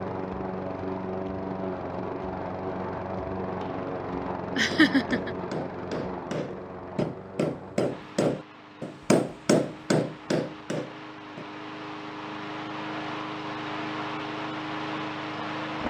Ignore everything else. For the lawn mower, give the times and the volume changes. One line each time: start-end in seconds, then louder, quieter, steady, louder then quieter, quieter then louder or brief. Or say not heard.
0.0-15.8 quieter then louder.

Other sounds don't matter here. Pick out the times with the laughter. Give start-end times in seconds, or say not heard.
4.5-5.3.